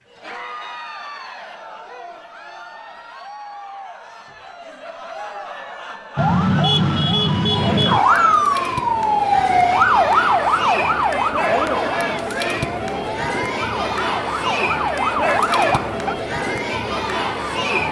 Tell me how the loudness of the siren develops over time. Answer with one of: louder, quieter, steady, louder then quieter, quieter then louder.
quieter then louder.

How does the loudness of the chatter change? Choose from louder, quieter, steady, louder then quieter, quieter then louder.
louder.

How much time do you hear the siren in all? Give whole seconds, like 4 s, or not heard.
10 s.